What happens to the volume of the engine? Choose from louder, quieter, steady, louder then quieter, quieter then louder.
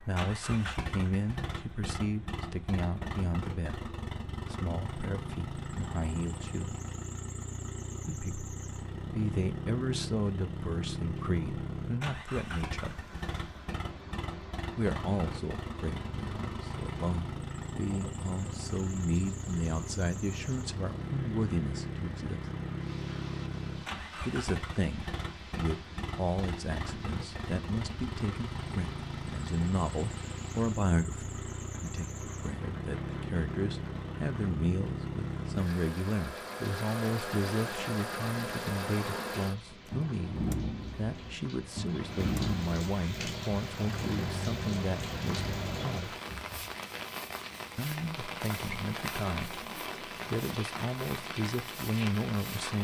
steady.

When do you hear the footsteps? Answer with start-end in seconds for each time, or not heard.
not heard.